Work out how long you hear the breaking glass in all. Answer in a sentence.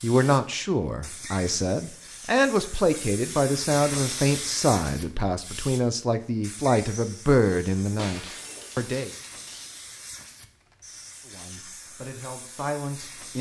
The breaking glass can be heard for 2 seconds in total.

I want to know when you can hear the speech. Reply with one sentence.
The speech can be heard from 0.0 to 9.1 s and from 11.2 to 13.3 s.